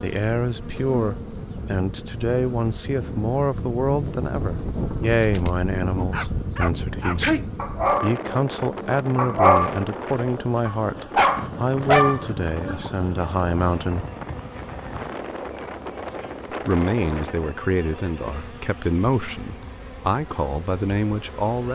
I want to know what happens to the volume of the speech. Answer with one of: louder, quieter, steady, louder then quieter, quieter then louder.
steady.